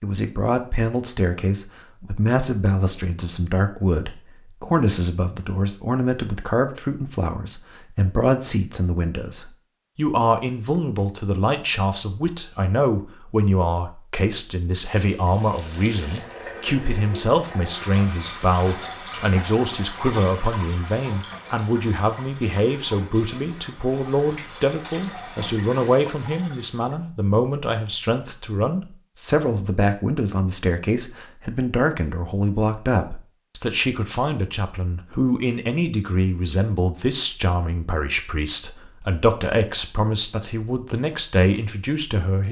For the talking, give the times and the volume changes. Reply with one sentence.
The talking can be heard from 0.0 to 42.4 s, at a steady volume.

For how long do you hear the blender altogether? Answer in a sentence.
The blender can't be heard in this clip.